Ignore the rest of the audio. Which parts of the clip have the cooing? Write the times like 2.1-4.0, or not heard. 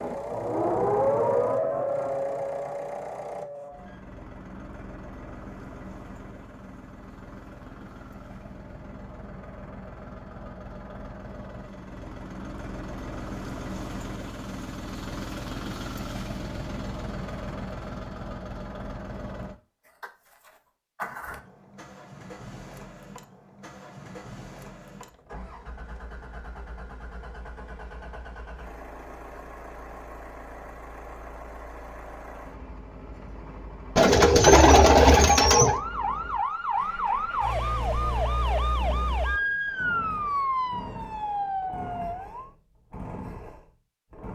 34.0-35.8.